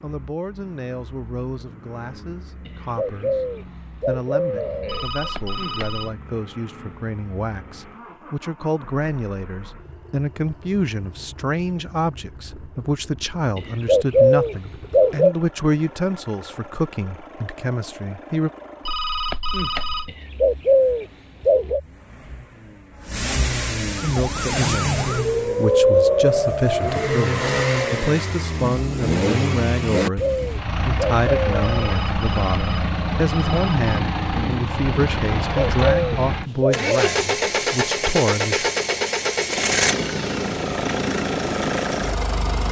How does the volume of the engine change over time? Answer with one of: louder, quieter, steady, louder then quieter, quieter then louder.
louder.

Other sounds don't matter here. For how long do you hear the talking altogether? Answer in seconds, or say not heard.
33 s.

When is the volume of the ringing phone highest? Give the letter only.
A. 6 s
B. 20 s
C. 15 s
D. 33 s
B.